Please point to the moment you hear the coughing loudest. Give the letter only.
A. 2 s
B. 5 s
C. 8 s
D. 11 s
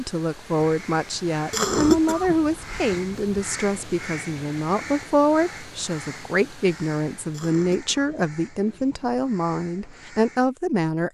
A.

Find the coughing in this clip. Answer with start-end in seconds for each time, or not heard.
1.5-3.4, 7.3-8.9.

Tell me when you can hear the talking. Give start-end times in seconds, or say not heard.
0.0-11.0.